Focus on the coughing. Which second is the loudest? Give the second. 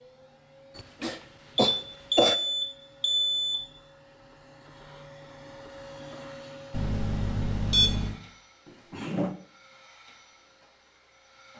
2 s.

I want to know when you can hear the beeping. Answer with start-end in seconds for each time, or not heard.
1.6-3.5, 6.7-8.2.